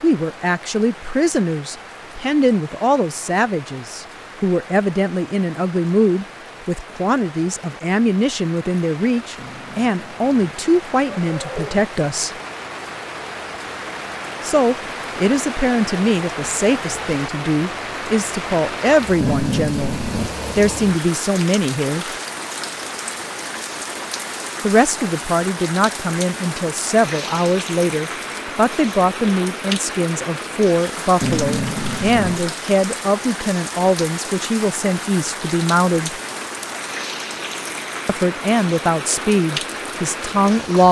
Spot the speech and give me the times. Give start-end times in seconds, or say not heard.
0.0-12.3, 14.4-19.9, 20.6-22.1, 24.6-36.1, 38.0-40.8.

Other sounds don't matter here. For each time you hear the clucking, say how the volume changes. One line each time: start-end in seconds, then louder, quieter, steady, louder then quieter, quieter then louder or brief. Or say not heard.
not heard.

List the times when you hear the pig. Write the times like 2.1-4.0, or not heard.
not heard.